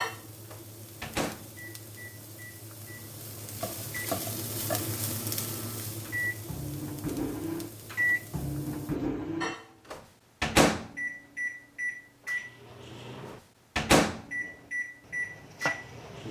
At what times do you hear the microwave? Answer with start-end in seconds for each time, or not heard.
0.0-16.2.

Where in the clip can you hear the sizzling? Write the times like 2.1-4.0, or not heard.
0.0-9.0.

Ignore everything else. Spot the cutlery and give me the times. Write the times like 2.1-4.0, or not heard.
not heard.